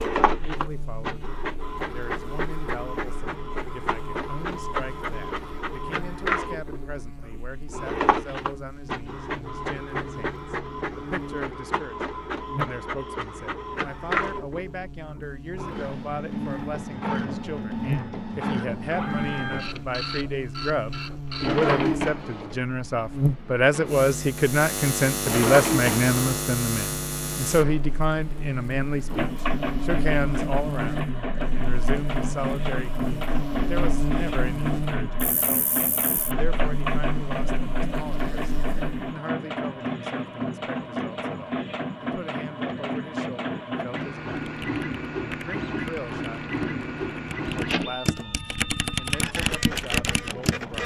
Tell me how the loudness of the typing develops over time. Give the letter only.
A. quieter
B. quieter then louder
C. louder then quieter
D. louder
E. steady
D.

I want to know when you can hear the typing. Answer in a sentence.
The typing can be heard from 44.4 to 50.8 s.